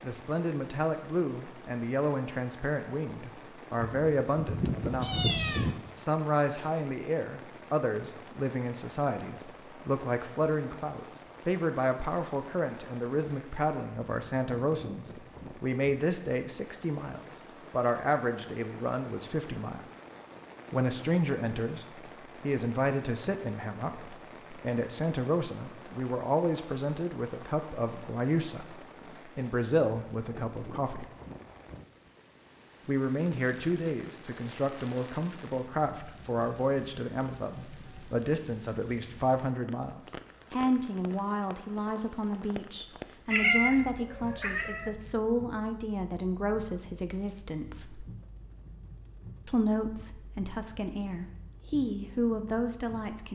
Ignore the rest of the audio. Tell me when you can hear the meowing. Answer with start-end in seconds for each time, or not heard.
3.8-5.8, 43.3-44.9.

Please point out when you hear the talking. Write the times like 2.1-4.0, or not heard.
0.0-5.2, 6.0-19.8, 20.7-31.1, 32.9-48.0, 49.5-53.3.